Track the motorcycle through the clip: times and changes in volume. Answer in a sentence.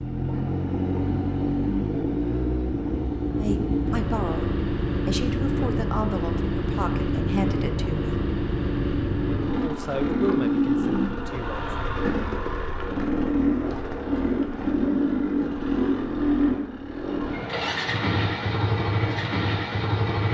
The motorcycle can be heard from 0.0 to 20.2 s, at a steady volume.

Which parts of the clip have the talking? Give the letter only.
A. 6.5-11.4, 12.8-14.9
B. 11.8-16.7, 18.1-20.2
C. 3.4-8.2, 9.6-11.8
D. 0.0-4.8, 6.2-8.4
C.